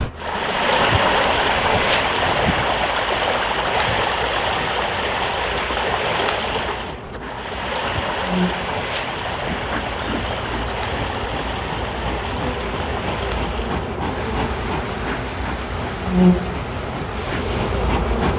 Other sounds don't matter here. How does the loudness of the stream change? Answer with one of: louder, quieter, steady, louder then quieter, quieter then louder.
quieter.